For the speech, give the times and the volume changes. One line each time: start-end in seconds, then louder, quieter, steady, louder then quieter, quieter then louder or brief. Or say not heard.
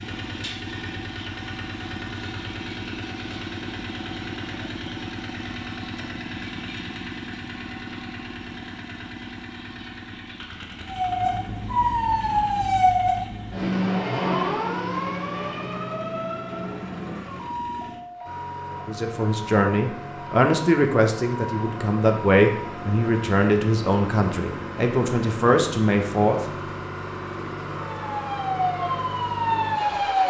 18.9-26.4 steady.